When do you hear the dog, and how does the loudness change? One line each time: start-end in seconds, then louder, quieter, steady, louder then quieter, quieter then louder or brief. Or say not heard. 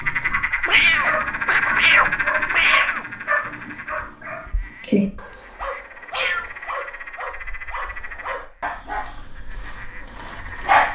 0.0-10.8 quieter.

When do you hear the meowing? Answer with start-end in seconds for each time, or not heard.
0.7-3.0, 6.1-6.5.